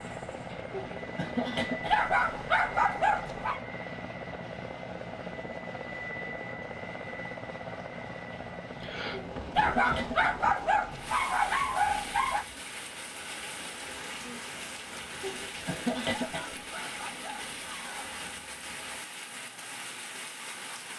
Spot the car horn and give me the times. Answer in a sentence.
The car horn can't be heard in this clip.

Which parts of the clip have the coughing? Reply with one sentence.
The coughing can be heard from 0.7 to 2.1 s, from 9.3 to 10.3 s and from 15.2 to 16.6 s.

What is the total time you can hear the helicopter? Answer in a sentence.
The helicopter can be heard for 19 seconds in total.